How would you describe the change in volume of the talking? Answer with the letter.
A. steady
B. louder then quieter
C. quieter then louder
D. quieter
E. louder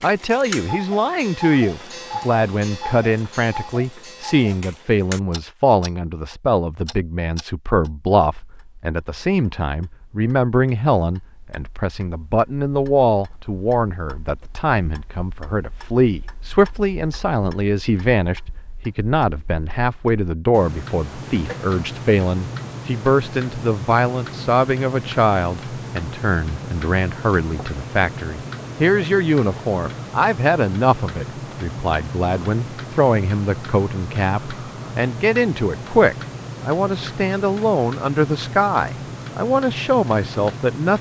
A.